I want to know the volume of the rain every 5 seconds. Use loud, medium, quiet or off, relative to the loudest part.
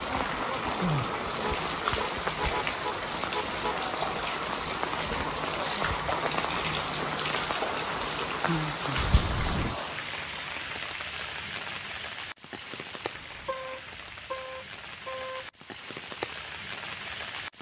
loud, loud, medium, medium.